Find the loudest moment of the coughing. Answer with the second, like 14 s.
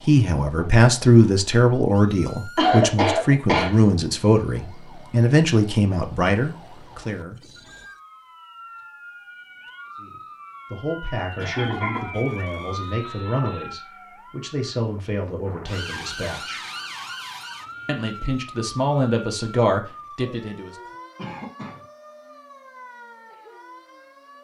3 s.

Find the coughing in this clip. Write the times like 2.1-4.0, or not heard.
2.5-3.7, 11.3-12.2, 21.1-21.8.